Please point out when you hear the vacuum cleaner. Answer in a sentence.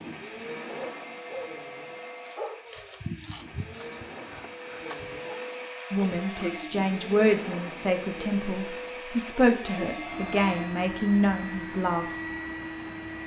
The vacuum cleaner can be heard from 0.0 to 13.2 s.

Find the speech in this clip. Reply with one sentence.
The speech can be heard from 5.9 to 12.2 s.